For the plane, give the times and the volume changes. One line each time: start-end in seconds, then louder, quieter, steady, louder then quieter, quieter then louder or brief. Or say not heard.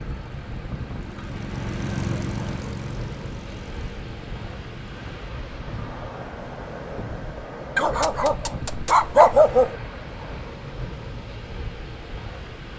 0.0-5.3 louder then quieter.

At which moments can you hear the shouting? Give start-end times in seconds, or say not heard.
not heard.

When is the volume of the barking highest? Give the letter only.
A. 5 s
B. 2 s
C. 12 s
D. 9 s
D.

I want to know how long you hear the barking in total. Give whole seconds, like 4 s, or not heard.
2 s.